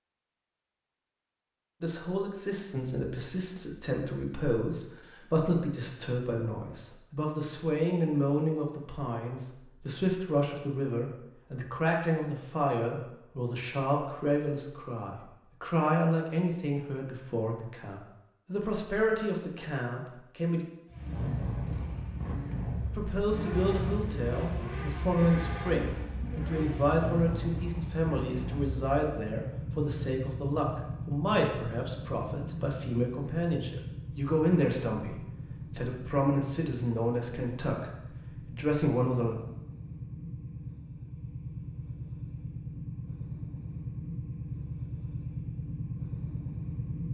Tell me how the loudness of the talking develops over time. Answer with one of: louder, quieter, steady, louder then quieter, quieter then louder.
steady.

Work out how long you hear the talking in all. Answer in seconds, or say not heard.
35 s.